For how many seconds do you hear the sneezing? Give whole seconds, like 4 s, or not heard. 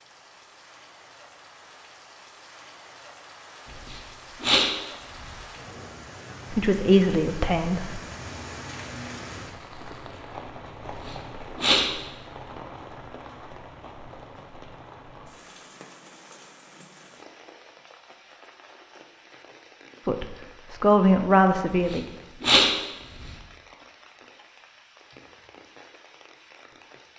4 s.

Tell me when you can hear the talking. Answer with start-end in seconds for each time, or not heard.
6.5-8.0, 20.1-22.0.